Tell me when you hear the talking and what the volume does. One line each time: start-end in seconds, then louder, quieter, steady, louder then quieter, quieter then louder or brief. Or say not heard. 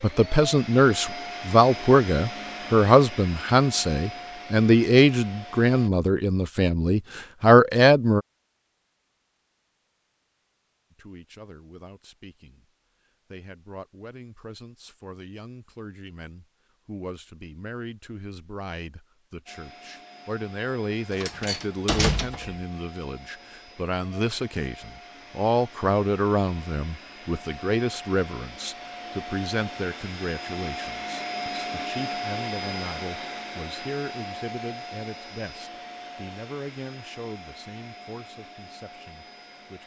0.0-8.2 steady
10.9-12.7 brief
13.3-39.8 louder then quieter.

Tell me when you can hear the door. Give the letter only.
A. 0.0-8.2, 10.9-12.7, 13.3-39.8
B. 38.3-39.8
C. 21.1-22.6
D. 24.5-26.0
C.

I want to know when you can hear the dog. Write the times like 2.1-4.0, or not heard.
not heard.